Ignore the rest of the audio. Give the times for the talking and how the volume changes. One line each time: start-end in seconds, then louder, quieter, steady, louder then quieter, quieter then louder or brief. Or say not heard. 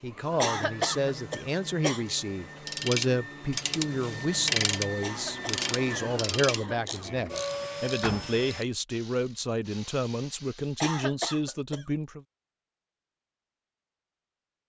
0.0-12.2 steady.